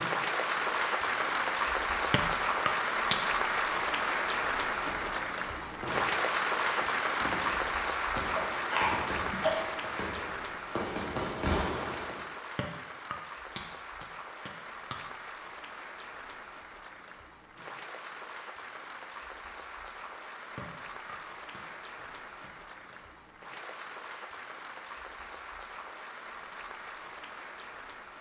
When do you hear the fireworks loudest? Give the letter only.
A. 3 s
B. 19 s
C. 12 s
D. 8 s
C.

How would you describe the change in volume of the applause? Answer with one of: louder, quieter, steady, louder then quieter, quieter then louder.
quieter.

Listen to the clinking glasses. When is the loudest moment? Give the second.
3 s.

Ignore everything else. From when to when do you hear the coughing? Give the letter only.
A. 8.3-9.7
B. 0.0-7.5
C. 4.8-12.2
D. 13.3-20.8
A.